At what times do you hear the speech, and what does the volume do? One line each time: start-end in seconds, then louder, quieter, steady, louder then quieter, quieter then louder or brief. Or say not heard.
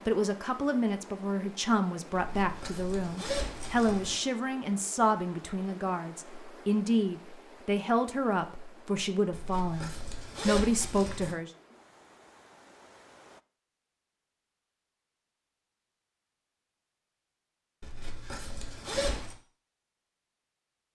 0.1-11.5 steady.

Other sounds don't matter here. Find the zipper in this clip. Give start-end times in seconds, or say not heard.
2.1-4.2, 9.3-11.3, 17.8-19.4.